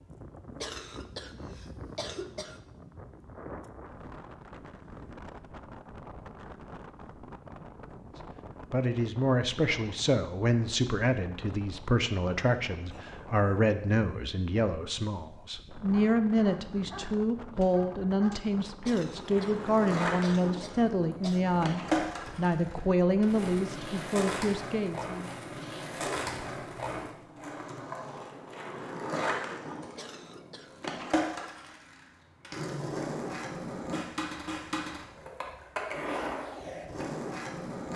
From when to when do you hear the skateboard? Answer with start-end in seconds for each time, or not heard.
19.1-37.9.